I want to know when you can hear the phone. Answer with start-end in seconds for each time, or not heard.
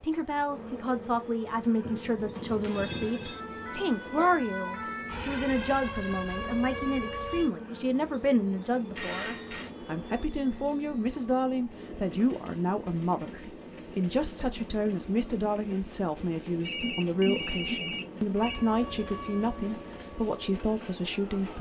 2.4-3.5, 8.9-9.7, 16.6-18.6.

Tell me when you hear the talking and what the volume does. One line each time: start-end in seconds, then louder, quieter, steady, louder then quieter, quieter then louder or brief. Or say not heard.
0.0-21.5 steady.